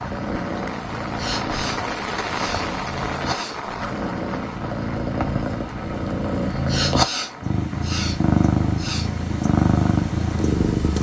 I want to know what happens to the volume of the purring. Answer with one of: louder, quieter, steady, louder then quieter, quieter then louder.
louder.